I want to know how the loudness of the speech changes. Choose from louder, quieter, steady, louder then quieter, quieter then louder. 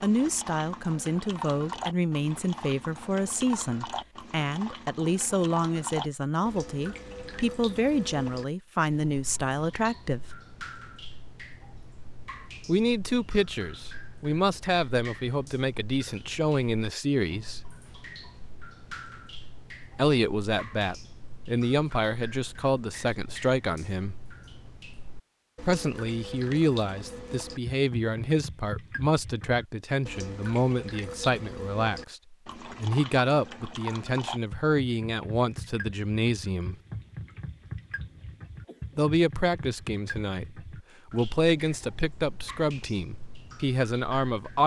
steady.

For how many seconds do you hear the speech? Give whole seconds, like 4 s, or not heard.
36 s.